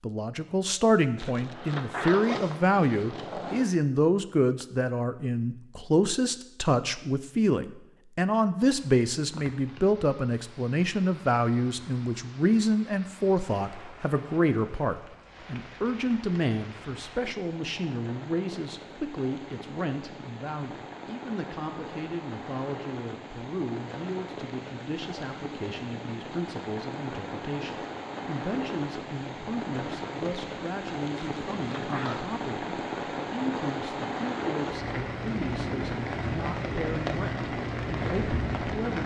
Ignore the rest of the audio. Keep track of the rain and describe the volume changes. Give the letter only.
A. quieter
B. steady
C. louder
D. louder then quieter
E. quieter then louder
C.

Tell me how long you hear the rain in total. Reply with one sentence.
The rain can be heard for 30 seconds in total.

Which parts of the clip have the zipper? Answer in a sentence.
You can hear the zipper from 1.1 to 3.6 s and from 31.1 to 32.2 s.